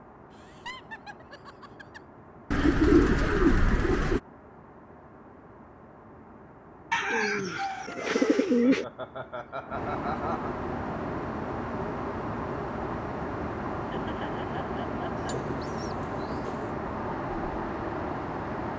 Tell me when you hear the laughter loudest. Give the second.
10 s.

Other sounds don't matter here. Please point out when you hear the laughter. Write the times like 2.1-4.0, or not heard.
0.3-2.0, 8.4-10.5, 13.7-15.2.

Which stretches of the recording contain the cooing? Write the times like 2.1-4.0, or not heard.
2.5-4.2, 6.9-8.8, 15.2-16.8.